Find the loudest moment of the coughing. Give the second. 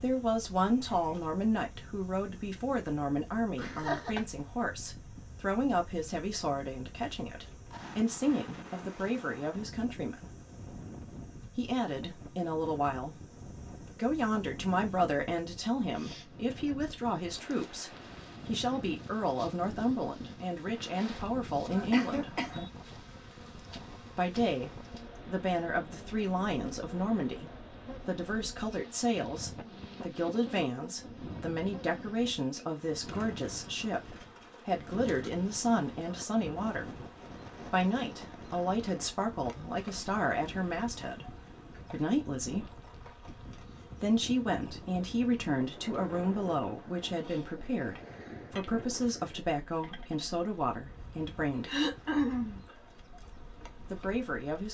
52 s.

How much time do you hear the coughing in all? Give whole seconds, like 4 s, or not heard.
3 s.